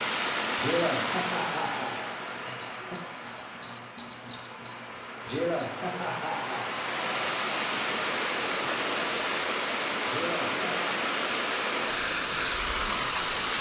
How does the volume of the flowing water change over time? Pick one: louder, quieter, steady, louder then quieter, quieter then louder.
quieter then louder.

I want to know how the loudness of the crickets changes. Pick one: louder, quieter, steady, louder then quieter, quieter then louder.
louder then quieter.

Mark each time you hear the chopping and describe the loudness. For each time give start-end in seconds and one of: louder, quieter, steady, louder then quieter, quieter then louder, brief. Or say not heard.
not heard.